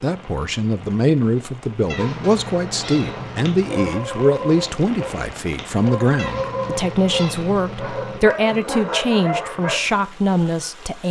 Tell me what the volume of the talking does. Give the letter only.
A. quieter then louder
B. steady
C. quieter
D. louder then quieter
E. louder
B.